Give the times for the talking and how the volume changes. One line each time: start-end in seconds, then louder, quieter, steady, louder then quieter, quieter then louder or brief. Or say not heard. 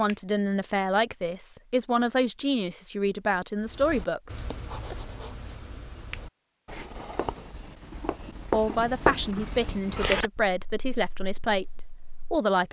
0.0-5.0 steady
8.5-12.6 steady.